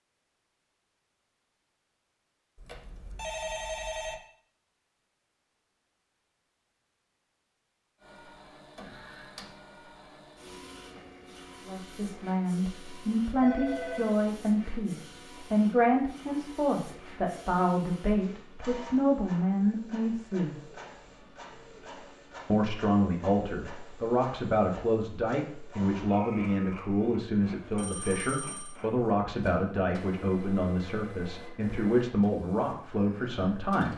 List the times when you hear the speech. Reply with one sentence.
You can hear the speech from 11.7 to 20.7 s and from 22.4 to 33.9 s.